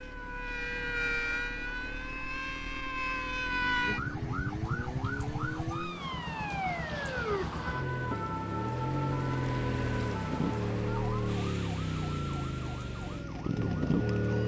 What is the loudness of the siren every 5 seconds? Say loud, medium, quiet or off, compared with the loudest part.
loud, loud, medium.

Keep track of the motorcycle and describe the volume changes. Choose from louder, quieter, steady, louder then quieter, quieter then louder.
louder.